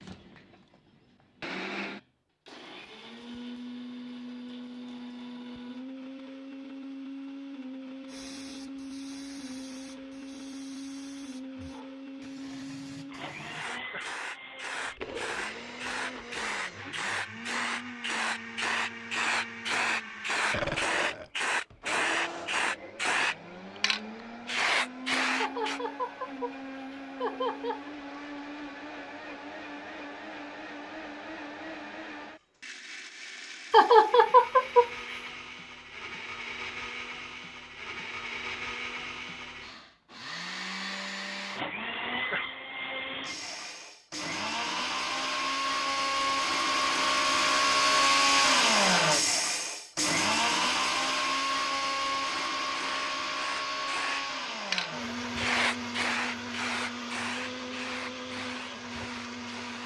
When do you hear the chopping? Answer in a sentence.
You can't hear the chopping here.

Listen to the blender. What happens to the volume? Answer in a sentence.
The volume of the blender goes up.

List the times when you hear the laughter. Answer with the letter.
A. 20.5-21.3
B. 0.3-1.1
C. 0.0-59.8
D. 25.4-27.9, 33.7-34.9
D.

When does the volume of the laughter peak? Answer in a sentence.
The loudest moment of the laughter is at 34 seconds.